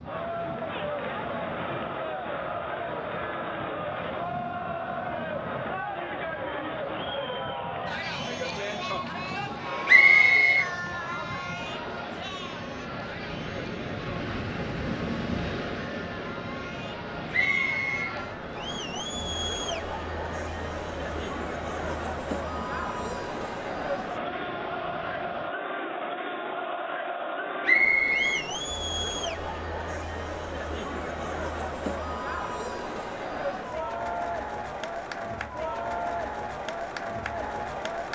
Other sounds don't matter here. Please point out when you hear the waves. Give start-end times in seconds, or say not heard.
0.0-25.6.